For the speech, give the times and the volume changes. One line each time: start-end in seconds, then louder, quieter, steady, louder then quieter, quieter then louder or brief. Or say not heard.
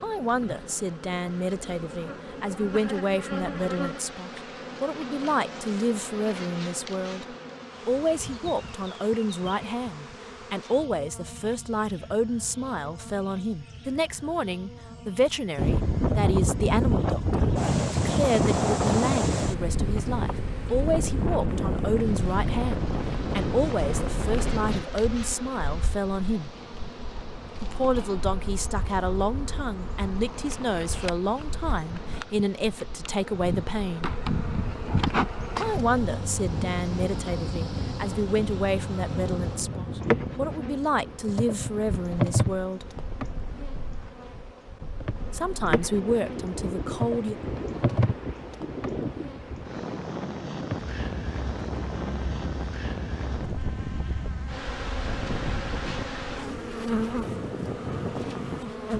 0.0-26.5 steady
27.6-34.1 steady
35.6-43.0 steady
45.3-47.4 brief.